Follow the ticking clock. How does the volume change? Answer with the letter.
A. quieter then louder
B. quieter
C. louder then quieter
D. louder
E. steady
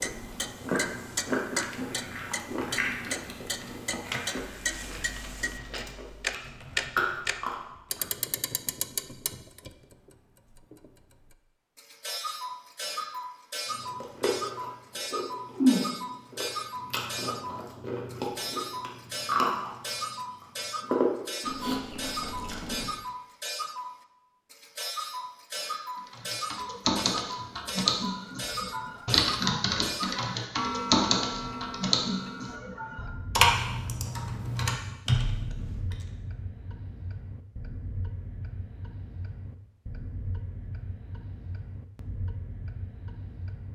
B.